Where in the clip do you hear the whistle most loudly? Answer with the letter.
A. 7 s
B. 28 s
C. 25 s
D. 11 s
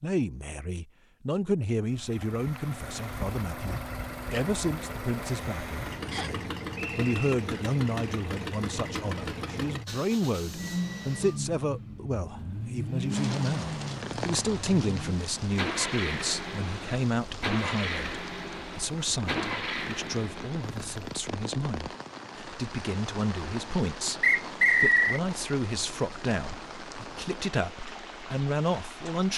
C.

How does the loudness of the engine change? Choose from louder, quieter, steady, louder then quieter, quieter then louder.
steady.